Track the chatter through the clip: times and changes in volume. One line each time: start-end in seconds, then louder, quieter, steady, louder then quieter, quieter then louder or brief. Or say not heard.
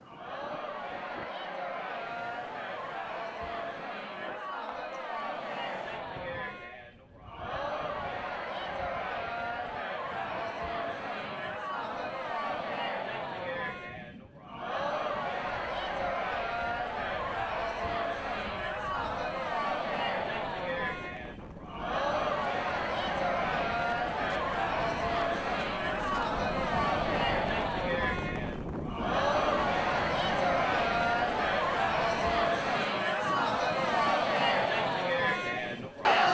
0.0-36.2 louder.